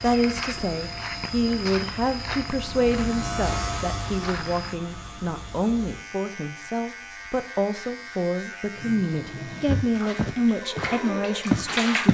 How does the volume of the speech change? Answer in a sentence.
The loudness of the speech stays about the same.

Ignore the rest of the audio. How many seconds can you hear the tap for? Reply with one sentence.
You can hear the tap for 3 seconds altogether.